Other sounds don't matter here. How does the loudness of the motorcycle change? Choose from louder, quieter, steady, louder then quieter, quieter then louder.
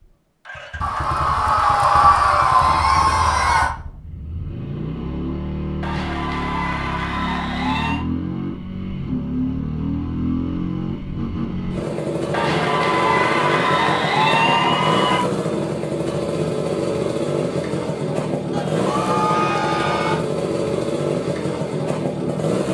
louder.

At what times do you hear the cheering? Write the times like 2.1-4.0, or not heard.
0.8-3.8, 5.8-8.1, 12.3-15.2, 18.5-20.2.